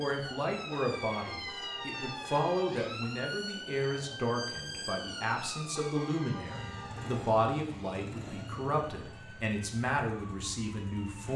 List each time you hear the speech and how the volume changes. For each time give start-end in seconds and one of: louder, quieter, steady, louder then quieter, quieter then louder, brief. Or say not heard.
0.0-11.3 steady.